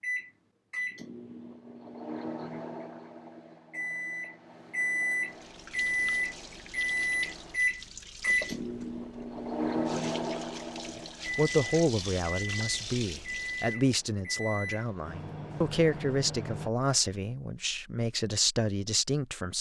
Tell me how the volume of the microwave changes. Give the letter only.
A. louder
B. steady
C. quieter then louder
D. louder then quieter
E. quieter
D.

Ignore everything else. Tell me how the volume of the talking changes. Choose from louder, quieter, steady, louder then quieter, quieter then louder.
steady.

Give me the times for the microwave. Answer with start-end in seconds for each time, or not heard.
0.0-16.7.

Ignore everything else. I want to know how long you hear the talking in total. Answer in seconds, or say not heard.
8 s.